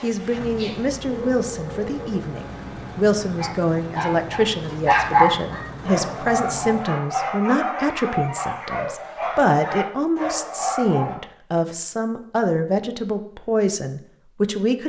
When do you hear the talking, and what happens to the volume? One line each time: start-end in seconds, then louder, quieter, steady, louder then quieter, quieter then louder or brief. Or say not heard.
0.0-14.8 steady.